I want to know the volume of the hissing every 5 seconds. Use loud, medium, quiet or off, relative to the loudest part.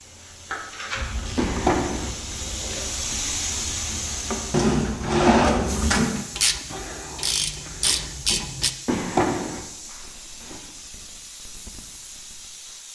loud, medium, medium.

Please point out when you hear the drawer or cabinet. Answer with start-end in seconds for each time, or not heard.
1.4-2.1, 4.5-6.2, 8.8-10.6.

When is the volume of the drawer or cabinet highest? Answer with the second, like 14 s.
5 s.